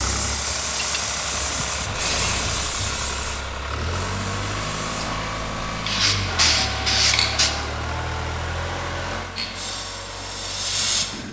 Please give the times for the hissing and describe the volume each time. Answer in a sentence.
You can hear the hissing from 0.0 to 7.5 s, getting quieter then louder; and briefly from 9.3 to 11.2 s.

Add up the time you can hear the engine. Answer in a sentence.
You can hear the engine for 11 seconds altogether.